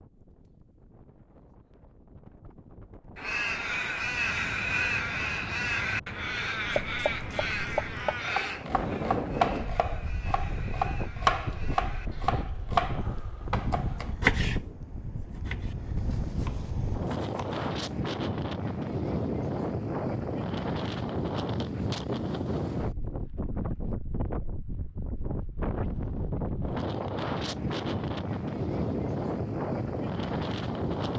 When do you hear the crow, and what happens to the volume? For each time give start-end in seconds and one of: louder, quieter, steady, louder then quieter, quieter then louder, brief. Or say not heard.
3.1-12.6 quieter.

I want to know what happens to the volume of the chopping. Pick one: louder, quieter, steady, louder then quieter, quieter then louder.
louder then quieter.